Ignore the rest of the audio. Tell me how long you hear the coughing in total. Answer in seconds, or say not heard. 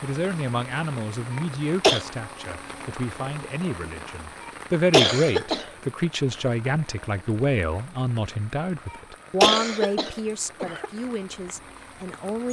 4 s.